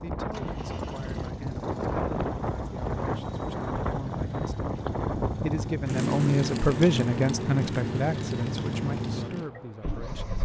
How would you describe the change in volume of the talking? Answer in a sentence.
The volume of the talking goes up, then down.